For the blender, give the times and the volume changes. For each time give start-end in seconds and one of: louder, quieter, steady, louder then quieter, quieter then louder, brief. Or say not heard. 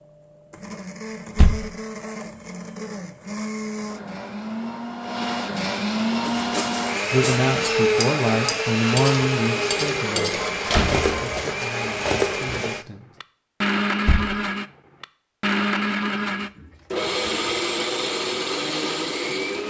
0.0-19.6 louder.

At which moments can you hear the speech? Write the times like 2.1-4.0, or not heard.
7.1-13.1.